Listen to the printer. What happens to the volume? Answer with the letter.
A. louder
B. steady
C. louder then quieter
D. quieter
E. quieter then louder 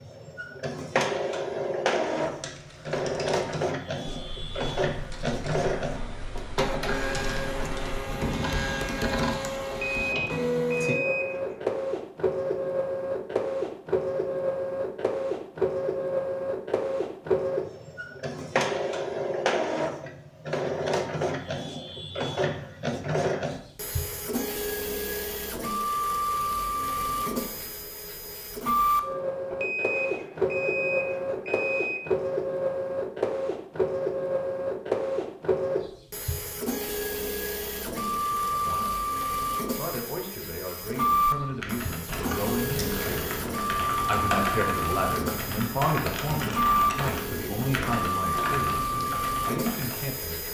B.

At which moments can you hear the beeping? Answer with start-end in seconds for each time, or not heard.
9.7-11.7, 29.5-32.0.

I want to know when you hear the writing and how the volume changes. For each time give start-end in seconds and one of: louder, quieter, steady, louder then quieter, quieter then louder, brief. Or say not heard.
not heard.